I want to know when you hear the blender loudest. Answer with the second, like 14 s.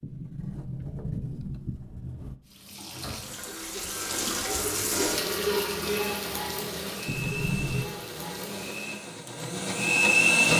10 s.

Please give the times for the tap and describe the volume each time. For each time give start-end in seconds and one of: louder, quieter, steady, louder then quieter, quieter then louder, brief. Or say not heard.
2.5-8.9 louder then quieter.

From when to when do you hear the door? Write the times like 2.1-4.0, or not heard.
0.0-2.4, 7.0-7.8.